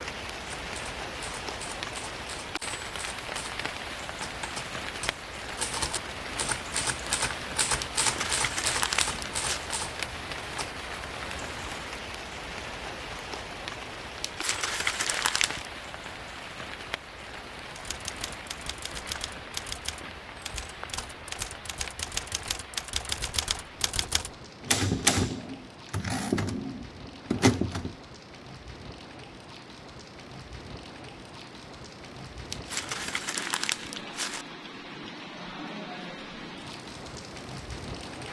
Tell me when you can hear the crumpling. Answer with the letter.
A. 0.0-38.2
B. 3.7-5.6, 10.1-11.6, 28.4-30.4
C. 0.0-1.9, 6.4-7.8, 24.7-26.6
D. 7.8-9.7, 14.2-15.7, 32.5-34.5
D.